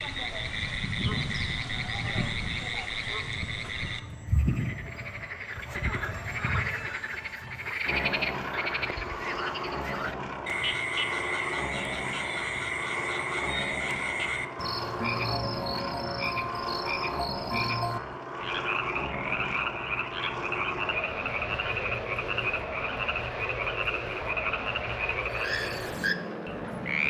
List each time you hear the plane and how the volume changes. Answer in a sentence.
You can hear the plane from 0.0 to 27.0 s, at a steady volume.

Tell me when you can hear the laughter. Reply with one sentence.
The laughter can't be heard in this clip.